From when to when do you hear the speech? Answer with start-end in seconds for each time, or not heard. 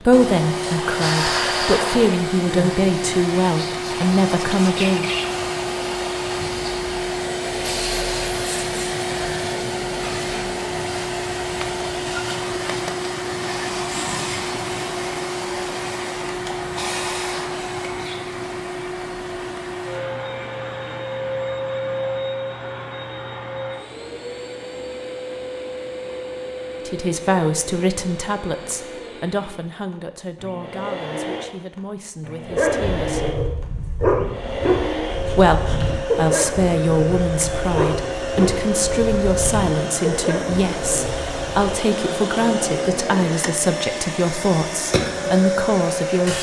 0.0-5.1, 26.9-33.4, 35.4-46.3.